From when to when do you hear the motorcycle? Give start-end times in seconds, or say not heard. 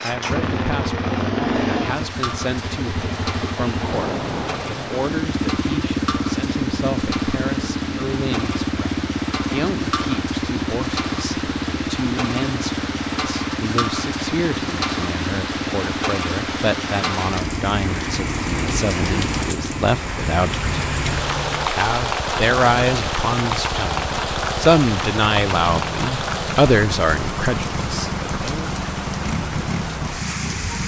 0.0-30.8.